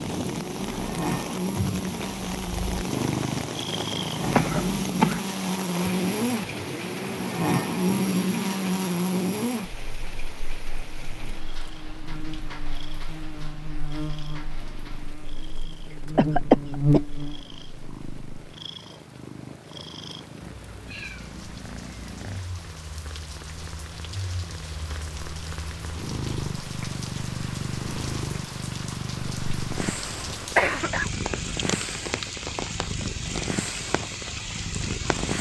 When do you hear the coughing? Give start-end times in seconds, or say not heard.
4.2-5.2, 15.9-17.0, 30.6-31.1.